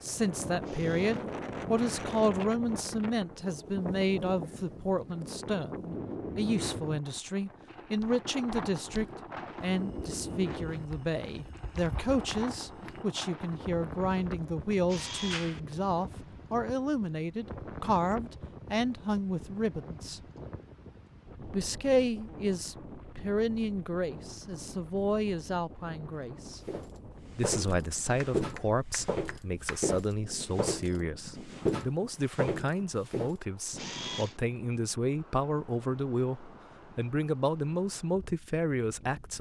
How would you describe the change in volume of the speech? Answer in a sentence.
The volume of the speech stays about the same.